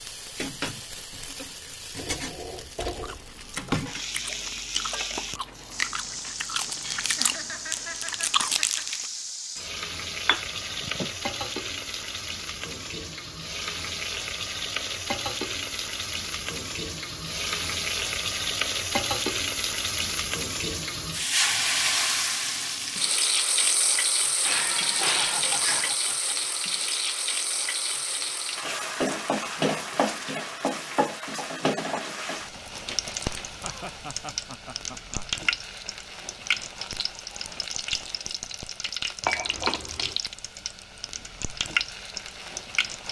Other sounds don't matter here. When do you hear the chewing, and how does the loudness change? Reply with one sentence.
You can hear the chewing from 2.5 to 9.1 s, getting louder.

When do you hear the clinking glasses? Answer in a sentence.
You can hear the clinking glasses from 10.2 to 11.1 s, from 24.4 to 25.9 s and from 39.2 to 40.1 s.